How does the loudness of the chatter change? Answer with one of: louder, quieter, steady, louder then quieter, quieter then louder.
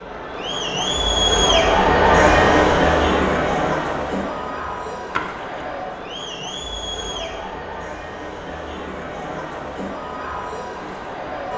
quieter.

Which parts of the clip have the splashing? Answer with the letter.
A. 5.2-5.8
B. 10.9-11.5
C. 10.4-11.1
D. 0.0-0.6
A.